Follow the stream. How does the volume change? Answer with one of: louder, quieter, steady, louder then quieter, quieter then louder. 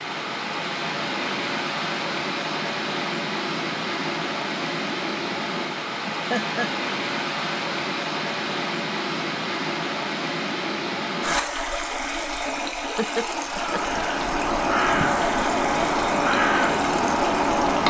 steady.